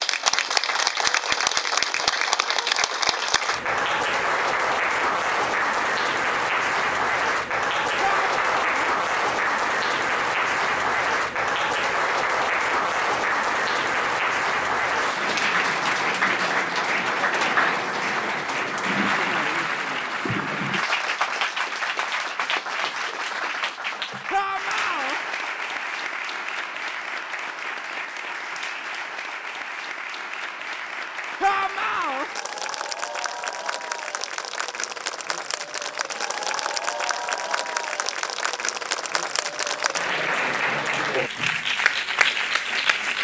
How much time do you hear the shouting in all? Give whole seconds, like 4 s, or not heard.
3 s.